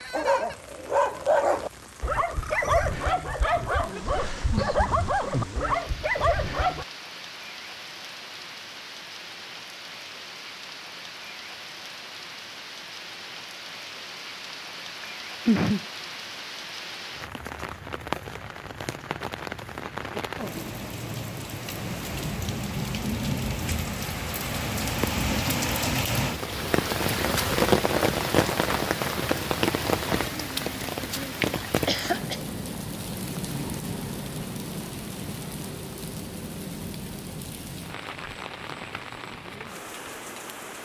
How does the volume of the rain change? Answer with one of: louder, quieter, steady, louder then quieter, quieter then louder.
louder then quieter.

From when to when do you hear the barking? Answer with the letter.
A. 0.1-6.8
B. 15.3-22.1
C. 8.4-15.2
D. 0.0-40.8
A.